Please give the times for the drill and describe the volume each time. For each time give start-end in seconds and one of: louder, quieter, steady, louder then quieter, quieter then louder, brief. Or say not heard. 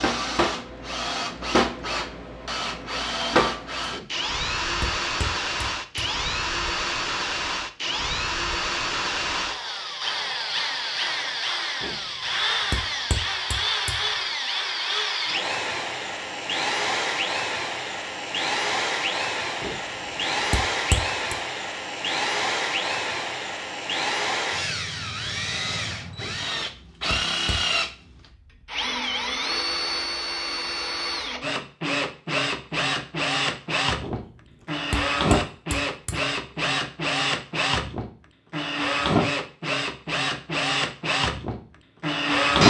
0.0-42.6 steady.